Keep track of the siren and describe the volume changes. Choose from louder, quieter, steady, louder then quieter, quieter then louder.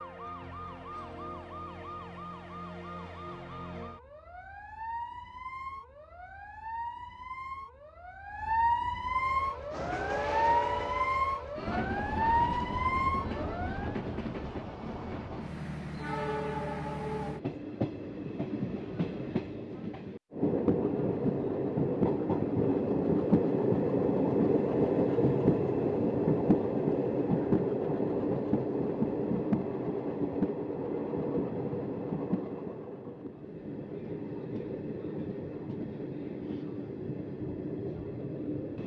louder.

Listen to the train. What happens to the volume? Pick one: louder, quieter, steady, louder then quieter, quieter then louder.
louder then quieter.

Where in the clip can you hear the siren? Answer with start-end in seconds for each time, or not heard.
0.0-14.0.